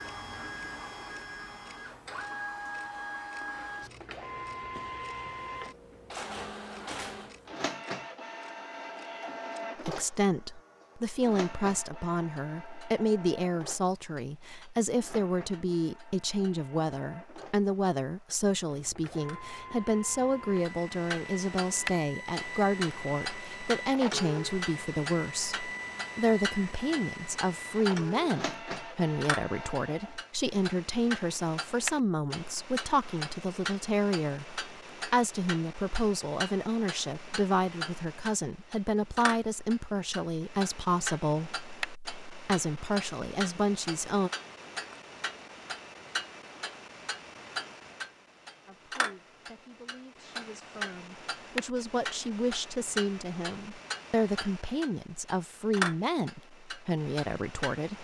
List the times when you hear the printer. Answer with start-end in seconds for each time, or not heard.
0.0-30.2.